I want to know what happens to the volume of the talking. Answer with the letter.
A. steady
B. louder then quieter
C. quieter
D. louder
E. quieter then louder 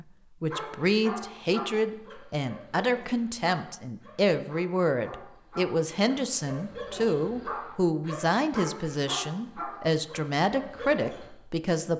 A.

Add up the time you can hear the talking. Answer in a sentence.
The talking can be heard for 12 seconds in total.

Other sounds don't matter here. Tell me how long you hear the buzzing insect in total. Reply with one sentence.
You can't hear the buzzing insect here.